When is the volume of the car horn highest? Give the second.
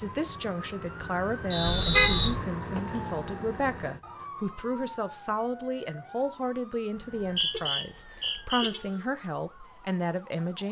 2 s.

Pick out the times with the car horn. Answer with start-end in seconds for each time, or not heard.
1.6-2.4, 7.5-9.1.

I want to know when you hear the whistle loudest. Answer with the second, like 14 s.
2 s.